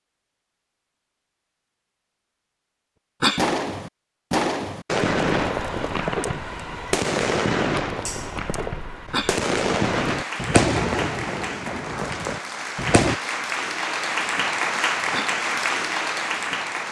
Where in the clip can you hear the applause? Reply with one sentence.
You can hear the applause from 9.8 to 16.8 s.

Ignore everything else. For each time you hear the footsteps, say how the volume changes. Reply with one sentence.
The footsteps can't be heard in this clip.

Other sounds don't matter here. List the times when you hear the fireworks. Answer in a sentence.
You can hear the fireworks from 3.4 to 13.2 s.